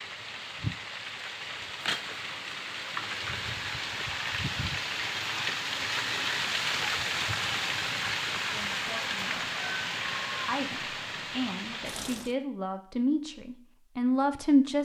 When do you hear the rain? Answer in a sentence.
The rain can be heard from 0.0 to 12.3 s.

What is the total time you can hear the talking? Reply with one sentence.
You can hear the talking for 5 seconds altogether.